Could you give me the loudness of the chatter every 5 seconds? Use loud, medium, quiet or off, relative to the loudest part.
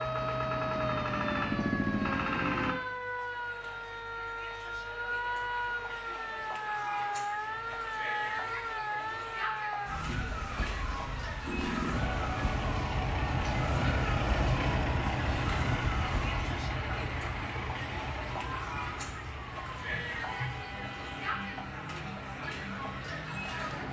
medium, loud, loud, loud, loud.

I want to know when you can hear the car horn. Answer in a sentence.
You can hear the car horn from 20.2 to 21.6 s.